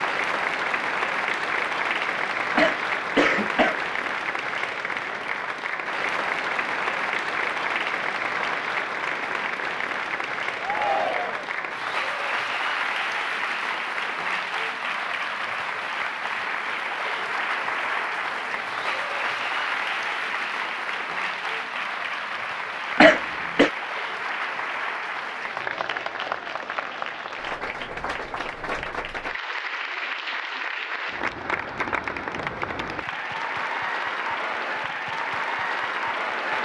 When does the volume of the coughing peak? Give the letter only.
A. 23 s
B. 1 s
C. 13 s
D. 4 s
A.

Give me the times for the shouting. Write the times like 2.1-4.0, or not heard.
10.6-11.5.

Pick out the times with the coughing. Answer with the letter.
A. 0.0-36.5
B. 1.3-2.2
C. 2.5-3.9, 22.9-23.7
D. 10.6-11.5
C.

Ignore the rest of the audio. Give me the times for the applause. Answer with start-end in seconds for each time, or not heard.
0.0-36.5.